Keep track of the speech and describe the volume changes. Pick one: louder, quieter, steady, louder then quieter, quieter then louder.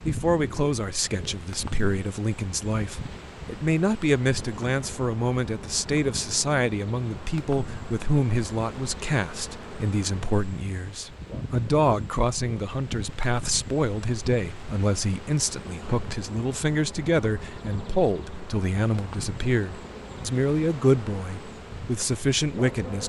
steady.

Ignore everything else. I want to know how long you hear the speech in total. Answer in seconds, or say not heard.
23 s.